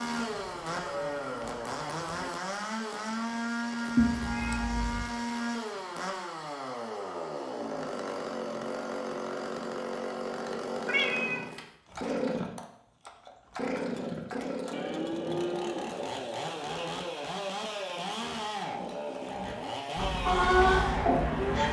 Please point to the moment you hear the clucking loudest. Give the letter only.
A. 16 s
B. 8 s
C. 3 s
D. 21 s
D.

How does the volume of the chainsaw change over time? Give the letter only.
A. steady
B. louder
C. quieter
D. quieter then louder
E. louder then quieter
A.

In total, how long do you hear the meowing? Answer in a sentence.
You can hear the meowing for 2 seconds altogether.